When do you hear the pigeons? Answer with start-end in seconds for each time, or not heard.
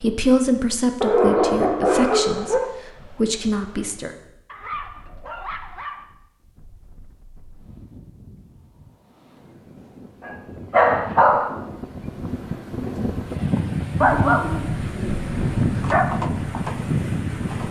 14.8-17.6.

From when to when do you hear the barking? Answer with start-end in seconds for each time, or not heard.
1.0-2.7, 4.5-6.0, 10.2-11.6, 14.0-16.1.